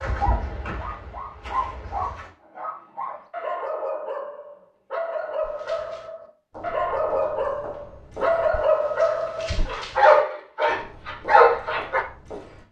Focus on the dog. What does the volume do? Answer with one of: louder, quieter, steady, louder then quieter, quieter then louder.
louder.